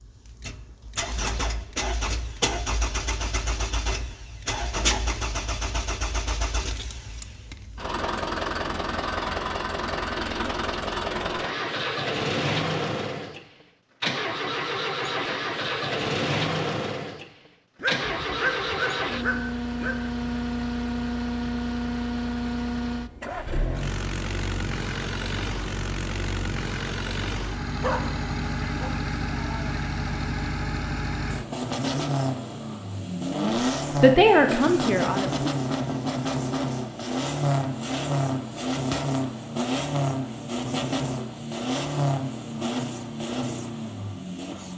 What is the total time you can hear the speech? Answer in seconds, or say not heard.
2 s.